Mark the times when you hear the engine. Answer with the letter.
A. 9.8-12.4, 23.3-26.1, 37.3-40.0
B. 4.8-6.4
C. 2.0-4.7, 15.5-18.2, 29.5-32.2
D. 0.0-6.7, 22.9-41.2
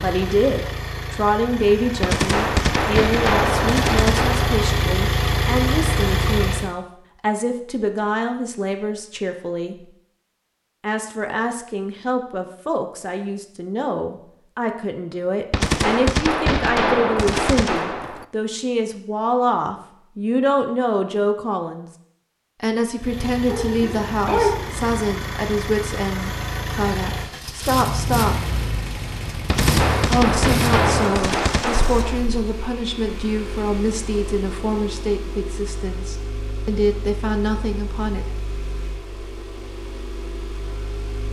D.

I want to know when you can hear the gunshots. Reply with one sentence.
You can hear the gunshots from 2.0 to 4.7 s, from 15.5 to 18.2 s and from 29.5 to 32.2 s.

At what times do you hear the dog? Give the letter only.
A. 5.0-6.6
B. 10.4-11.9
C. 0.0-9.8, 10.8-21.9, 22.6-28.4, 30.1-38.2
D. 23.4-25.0
D.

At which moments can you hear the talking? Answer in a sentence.
You can hear the talking from 0.0 to 9.8 s, from 10.8 to 21.9 s, from 22.6 to 28.4 s and from 30.1 to 38.2 s.